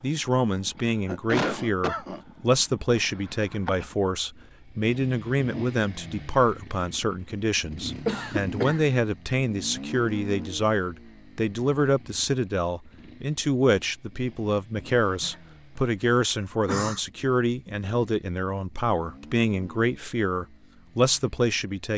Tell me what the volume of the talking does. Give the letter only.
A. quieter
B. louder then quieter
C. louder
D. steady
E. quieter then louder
D.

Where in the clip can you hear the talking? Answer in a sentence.
The talking can be heard from 0.0 to 21.9 s.